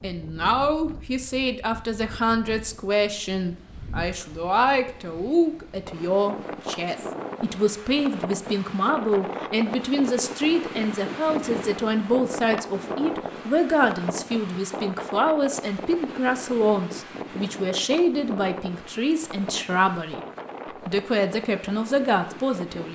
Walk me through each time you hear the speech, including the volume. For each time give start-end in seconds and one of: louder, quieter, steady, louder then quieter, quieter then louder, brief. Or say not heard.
0.0-20.2 steady
20.9-22.9 brief.